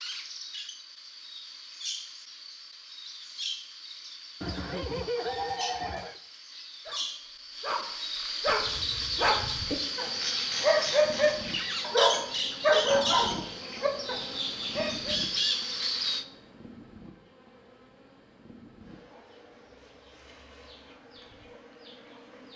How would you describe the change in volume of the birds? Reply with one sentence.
The volume of the birds goes up.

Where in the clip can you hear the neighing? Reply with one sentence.
The neighing can be heard from 4.4 to 6.2 s.